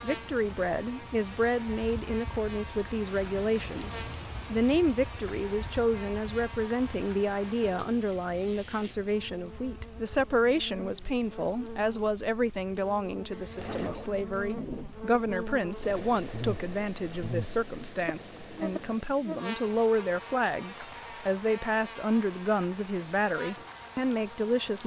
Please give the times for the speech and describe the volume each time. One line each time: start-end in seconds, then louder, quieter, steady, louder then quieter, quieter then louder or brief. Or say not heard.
0.0-24.8 steady.